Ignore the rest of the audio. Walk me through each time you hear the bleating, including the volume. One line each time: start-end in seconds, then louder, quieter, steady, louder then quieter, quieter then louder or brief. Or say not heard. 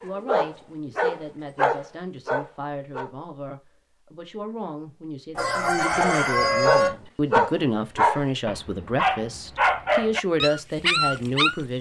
not heard.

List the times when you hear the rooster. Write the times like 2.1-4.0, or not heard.
5.3-6.9.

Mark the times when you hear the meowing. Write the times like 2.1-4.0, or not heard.
not heard.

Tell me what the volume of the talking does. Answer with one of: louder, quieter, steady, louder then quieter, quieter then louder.
louder.